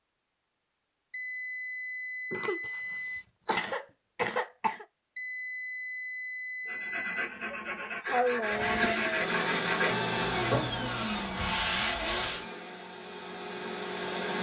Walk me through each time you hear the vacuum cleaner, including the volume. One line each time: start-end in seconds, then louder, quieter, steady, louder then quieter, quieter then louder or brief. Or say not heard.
8.5-14.3 quieter.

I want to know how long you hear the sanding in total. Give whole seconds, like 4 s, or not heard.
6 s.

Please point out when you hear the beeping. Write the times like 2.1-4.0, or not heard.
1.1-3.2, 5.2-7.3, 9.9-11.2.